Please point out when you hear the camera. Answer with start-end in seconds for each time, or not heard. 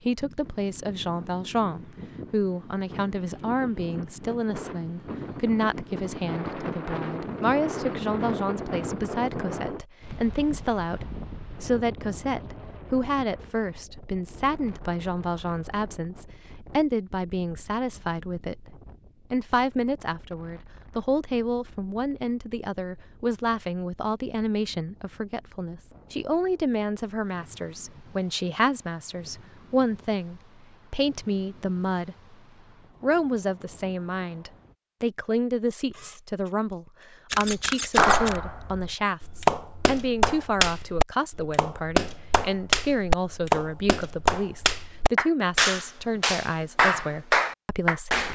35.9-36.5, 37.3-38.4.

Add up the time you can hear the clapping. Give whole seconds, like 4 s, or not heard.
11 s.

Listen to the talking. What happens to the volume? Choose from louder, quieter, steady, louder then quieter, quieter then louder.
steady.